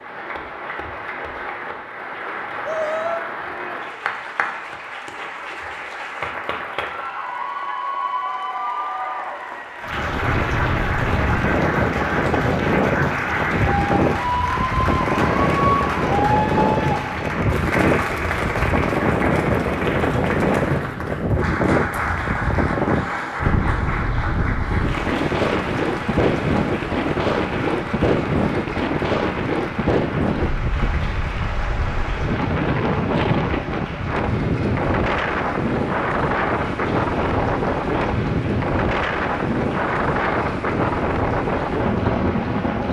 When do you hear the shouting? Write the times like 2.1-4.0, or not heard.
2.6-3.2.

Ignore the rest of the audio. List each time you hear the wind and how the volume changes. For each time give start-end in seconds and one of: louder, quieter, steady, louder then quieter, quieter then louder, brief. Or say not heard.
9.8-42.8 steady.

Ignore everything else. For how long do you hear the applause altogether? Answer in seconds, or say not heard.
43 s.